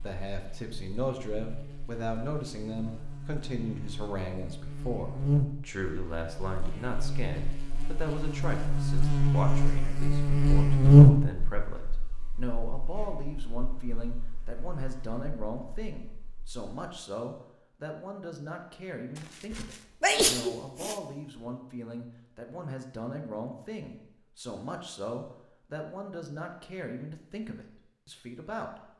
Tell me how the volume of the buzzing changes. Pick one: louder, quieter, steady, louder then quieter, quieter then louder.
louder then quieter.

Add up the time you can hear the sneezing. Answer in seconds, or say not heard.
2 s.